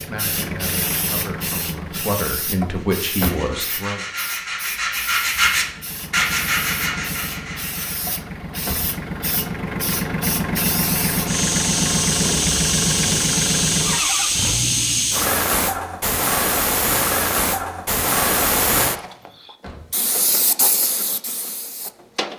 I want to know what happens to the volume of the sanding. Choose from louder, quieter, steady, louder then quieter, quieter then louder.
louder then quieter.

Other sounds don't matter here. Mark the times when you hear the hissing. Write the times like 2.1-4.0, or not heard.
0.0-22.3.